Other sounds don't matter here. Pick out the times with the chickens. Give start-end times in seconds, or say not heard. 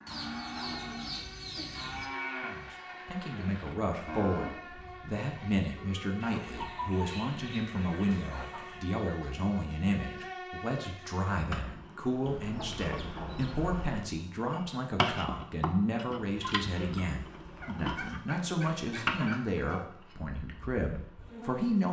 0.1-2.1, 6.2-8.8, 12.2-13.7, 17.2-19.9.